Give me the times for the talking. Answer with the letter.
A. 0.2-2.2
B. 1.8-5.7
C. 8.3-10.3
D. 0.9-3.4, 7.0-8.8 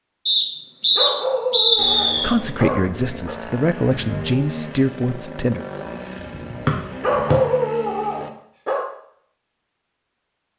B.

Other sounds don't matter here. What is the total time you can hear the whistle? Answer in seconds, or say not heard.
2 s.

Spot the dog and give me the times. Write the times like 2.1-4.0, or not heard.
0.9-3.4, 7.0-8.8.